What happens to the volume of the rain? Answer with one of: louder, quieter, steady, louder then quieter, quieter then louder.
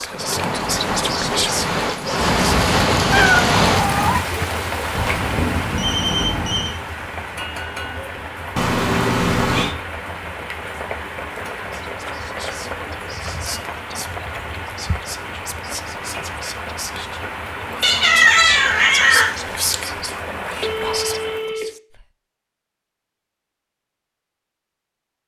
quieter.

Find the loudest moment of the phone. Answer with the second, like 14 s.
6 s.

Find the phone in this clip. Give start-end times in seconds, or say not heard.
5.0-6.8, 20.6-21.6.